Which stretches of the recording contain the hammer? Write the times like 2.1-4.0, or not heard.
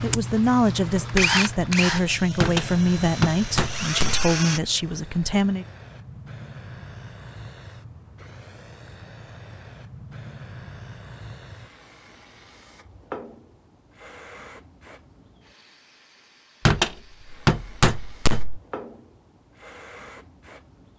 2.4-4.3, 16.6-18.6.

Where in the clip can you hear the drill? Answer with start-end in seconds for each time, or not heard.
0.0-4.6.